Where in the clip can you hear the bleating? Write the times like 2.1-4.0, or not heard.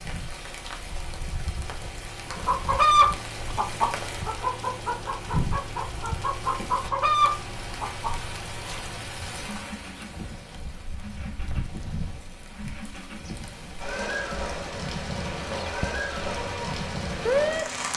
not heard.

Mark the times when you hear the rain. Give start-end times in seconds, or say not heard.
0.0-17.9.